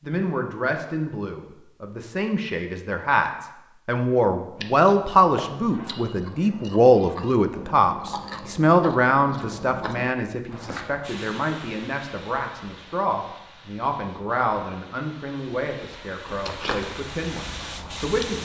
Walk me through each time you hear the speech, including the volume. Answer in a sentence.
You can hear the speech from 0.0 to 18.3 s, getting louder then quieter.